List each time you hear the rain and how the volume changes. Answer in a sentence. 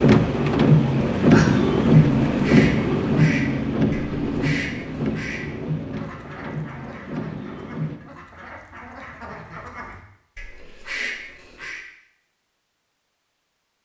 The rain can be heard from 0.0 to 8.0 s, getting quieter.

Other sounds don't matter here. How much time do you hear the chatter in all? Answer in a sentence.
The chatter can't be heard in this clip.